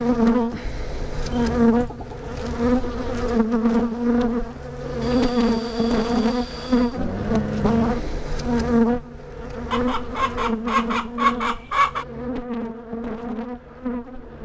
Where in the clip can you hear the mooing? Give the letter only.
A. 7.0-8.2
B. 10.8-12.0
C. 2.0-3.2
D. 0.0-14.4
A.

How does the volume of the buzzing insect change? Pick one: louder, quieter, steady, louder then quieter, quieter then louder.
quieter.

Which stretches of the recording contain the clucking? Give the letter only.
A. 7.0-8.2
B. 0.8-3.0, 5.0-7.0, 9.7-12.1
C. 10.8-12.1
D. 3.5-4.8
B.